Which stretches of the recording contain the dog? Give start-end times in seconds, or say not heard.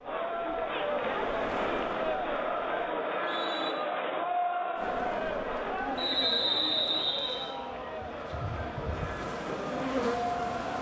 not heard.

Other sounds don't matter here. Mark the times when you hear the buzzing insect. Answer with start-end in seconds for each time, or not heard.
0.0-2.9, 4.8-10.7.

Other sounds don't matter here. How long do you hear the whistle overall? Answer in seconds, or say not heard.
2 s.